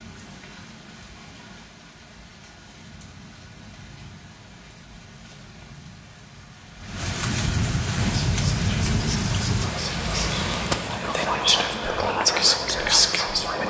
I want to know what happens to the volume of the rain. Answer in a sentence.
The loudness of the rain goes up, then down.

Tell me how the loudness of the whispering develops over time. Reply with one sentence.
The loudness of the whispering goes up.